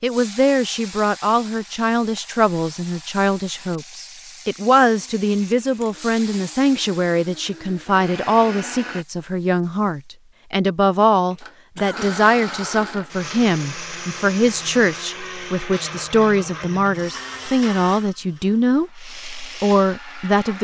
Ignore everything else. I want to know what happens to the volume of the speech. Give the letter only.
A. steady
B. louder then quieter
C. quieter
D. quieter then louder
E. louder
A.